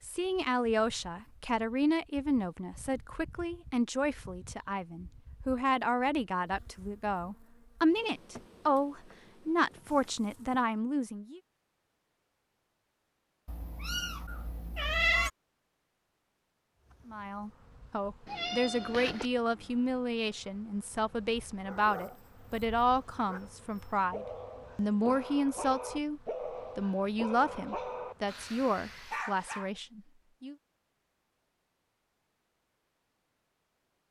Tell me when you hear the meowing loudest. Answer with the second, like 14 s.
15 s.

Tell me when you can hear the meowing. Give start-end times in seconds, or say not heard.
13.4-15.3, 18.2-19.3.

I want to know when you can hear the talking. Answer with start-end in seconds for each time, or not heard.
0.0-11.4, 17.1-30.6.